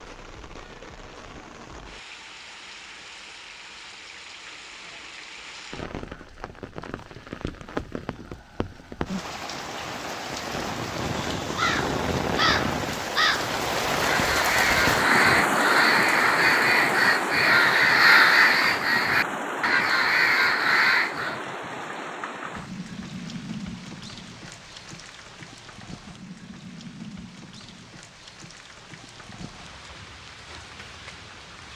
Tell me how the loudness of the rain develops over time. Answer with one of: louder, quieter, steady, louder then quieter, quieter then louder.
louder then quieter.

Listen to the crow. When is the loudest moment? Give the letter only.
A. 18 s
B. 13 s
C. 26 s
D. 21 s
A.